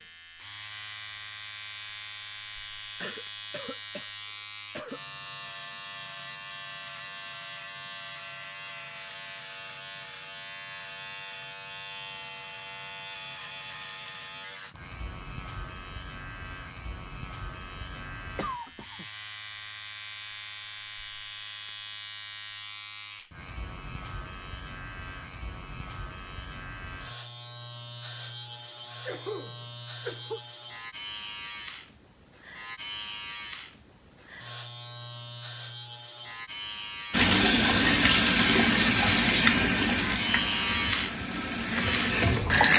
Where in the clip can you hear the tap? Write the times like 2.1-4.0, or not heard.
37.1-42.7.